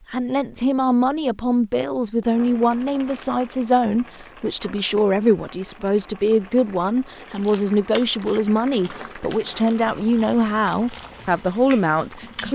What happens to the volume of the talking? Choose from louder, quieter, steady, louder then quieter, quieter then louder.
steady.